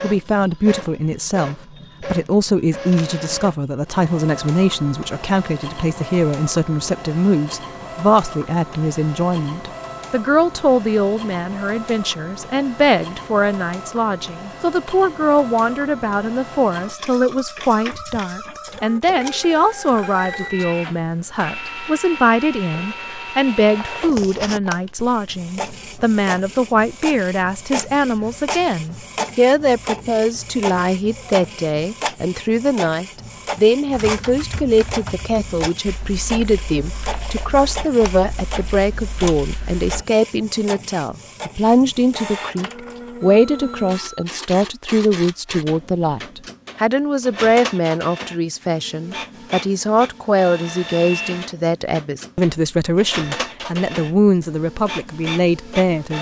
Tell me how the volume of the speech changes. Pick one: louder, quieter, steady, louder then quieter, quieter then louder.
steady.